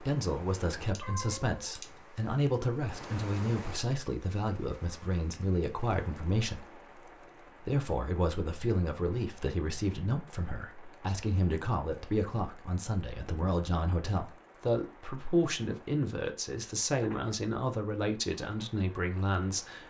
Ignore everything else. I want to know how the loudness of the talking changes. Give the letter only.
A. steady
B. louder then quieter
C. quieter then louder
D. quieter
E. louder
A.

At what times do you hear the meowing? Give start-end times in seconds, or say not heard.
0.9-2.0.